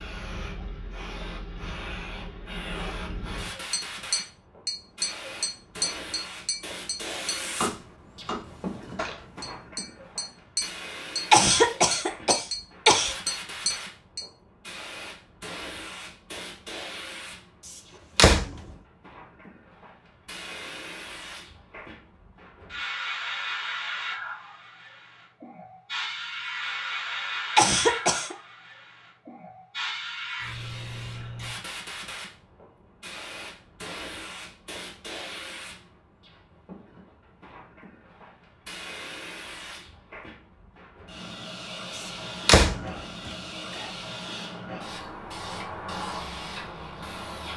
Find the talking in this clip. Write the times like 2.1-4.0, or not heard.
not heard.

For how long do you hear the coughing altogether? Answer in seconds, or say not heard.
3 s.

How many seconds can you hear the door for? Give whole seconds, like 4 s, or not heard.
2 s.